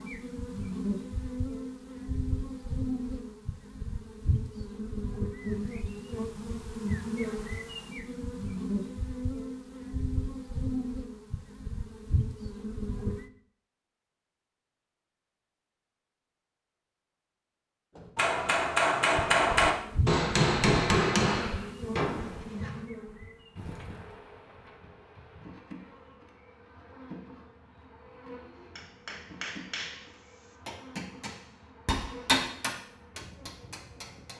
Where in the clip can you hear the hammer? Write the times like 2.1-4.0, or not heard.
17.9-22.8, 28.8-34.3.